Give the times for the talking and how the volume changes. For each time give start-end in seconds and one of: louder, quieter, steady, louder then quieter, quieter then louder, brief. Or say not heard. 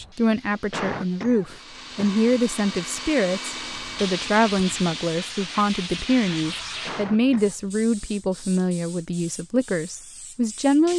0.0-10.9 steady.